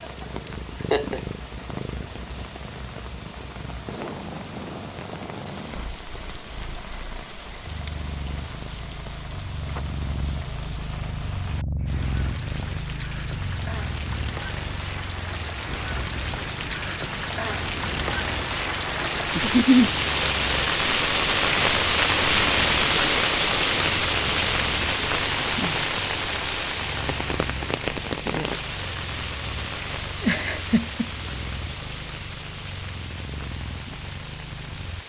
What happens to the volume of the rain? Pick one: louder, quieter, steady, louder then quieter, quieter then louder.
louder then quieter.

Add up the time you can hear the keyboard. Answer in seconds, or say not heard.
not heard.